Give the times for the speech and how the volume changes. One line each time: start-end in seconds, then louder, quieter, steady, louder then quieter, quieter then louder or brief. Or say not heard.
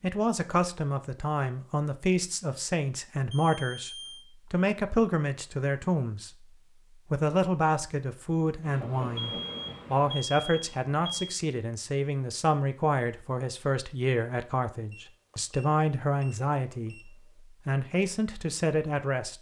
0.0-19.3 steady.